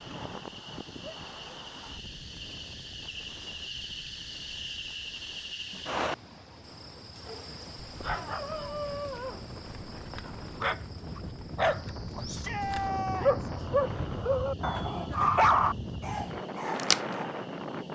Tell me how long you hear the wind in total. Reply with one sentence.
You can hear the wind for 18 seconds altogether.